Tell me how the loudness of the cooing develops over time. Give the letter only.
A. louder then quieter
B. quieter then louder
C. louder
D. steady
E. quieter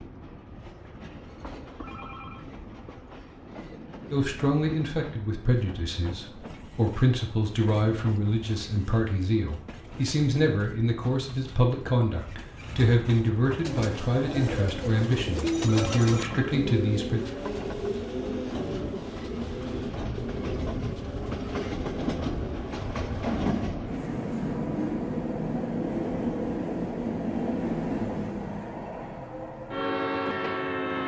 E.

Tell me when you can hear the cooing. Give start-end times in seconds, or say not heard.
13.6-23.4.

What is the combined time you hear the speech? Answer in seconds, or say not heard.
13 s.